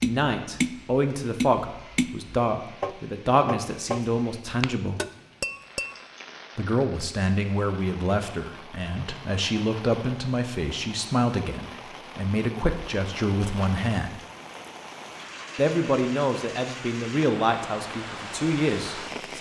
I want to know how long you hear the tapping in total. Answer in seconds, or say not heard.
6 s.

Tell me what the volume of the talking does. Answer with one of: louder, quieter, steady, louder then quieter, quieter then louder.
steady.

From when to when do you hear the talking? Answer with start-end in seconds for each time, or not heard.
0.0-5.0, 6.5-14.2, 15.6-19.3.